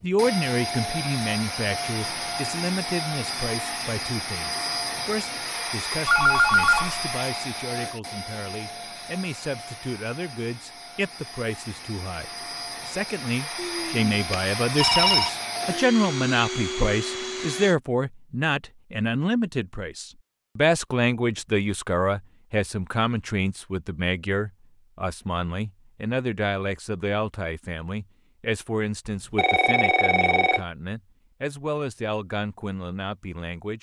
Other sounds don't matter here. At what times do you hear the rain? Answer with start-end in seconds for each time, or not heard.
not heard.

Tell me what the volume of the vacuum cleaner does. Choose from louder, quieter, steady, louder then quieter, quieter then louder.
quieter then louder.